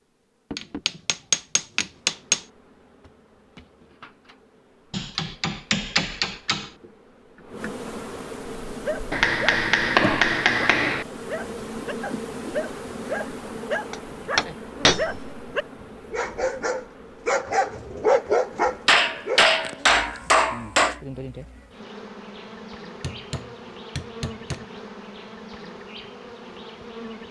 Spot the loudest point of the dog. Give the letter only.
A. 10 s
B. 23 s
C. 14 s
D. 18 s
D.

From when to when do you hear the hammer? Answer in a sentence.
You can hear the hammer from 0.6 to 2.4 s, from 4.9 to 6.7 s, from 9.1 to 11.1 s, from 13.9 to 15.3 s, from 18.9 to 21.0 s and from 23.0 to 24.6 s.